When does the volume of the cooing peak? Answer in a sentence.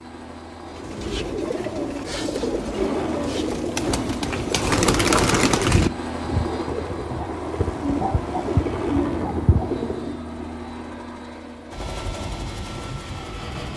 The loudest moment of the cooing is at 5 seconds.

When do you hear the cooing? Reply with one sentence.
You can hear the cooing from 0.7 to 10.2 s.